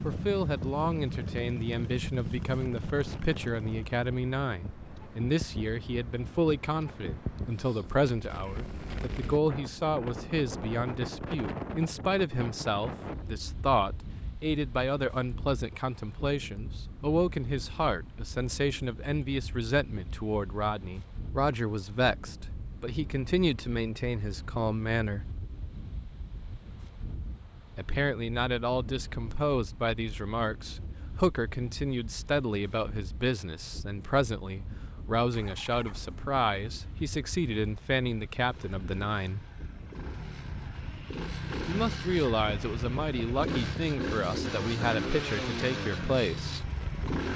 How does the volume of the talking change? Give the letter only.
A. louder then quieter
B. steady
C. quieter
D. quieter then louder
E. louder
B.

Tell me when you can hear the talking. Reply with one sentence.
You can hear the talking from 0.0 to 25.2 s, from 27.8 to 39.4 s and from 41.6 to 46.7 s.